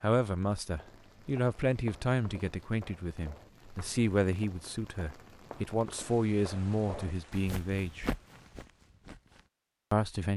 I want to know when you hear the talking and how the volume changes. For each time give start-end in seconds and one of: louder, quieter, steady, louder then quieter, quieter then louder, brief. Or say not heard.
0.0-8.1 steady
9.9-10.3 brief.